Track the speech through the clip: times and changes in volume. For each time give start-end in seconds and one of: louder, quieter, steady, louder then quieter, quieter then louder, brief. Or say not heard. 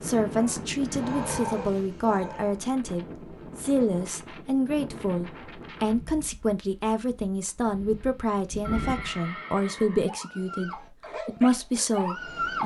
0.0-12.6 steady.